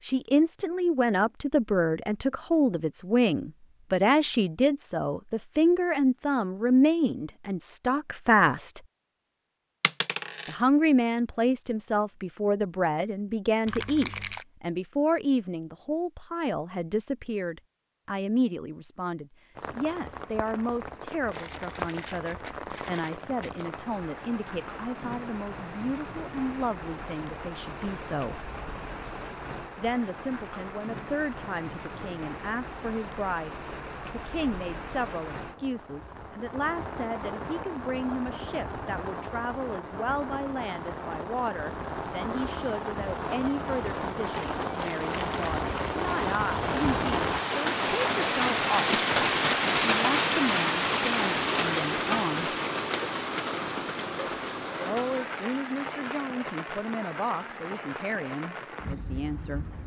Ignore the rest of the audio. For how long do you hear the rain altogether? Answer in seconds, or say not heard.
40 s.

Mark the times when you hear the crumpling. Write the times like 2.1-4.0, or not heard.
13.7-14.4, 21.3-23.7, 44.3-46.0.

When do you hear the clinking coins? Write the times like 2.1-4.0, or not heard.
9.8-10.6.